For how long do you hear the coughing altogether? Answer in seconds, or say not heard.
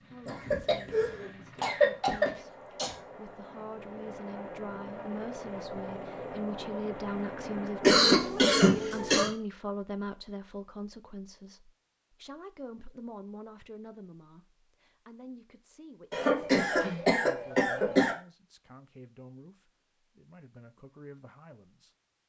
6 s.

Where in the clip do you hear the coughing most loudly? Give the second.
8 s.